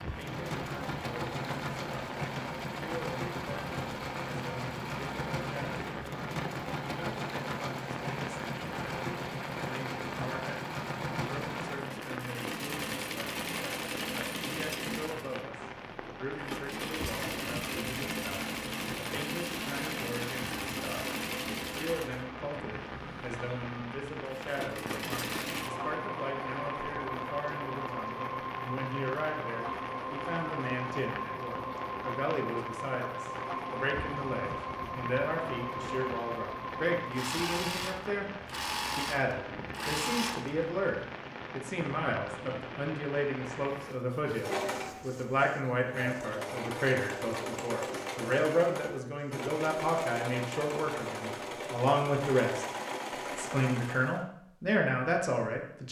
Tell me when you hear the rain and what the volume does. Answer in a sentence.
You can hear the rain from 0.0 to 44.0 s, at a steady volume.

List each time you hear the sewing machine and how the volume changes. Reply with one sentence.
You can hear the sewing machine from 0.0 to 40.5 s, at a steady volume; and from 43.7 to 54.2 s, at a steady volume.